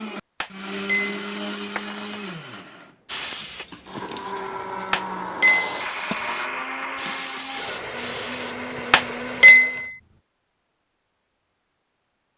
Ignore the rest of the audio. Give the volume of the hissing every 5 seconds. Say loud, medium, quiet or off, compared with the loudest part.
loud, loud, off.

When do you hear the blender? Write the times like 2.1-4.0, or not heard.
0.0-9.9.